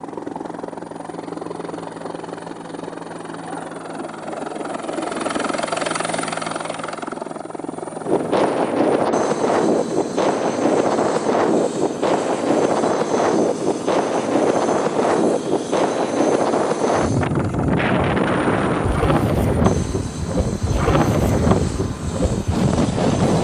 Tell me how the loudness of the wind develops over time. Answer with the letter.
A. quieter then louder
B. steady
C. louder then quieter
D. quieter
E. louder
B.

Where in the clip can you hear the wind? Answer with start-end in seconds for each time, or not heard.
8.0-23.3.